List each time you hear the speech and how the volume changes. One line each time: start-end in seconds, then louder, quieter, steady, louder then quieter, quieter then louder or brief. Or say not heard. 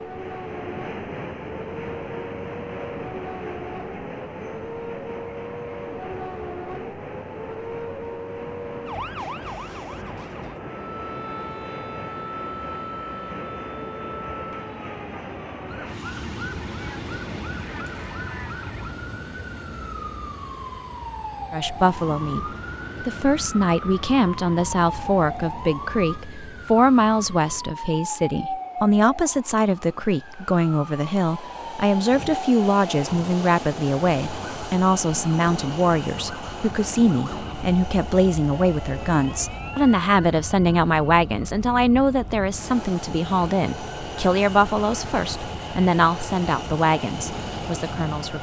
21.5-48.3 steady.